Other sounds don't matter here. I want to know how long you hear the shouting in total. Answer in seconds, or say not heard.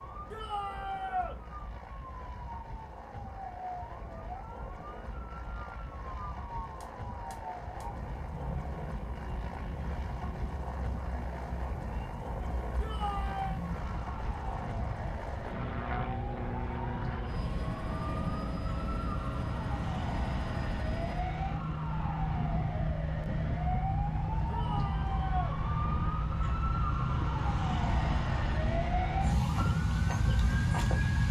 3 s.